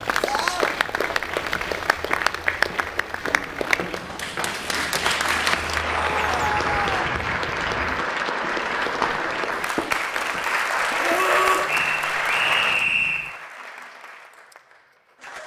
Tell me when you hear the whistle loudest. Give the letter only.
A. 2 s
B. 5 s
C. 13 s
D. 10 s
C.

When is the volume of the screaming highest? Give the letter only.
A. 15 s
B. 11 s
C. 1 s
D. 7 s
B.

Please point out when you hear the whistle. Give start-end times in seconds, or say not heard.
11.7-13.3.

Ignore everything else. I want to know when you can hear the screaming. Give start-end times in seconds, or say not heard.
0.2-0.7, 5.9-7.0, 10.9-11.7.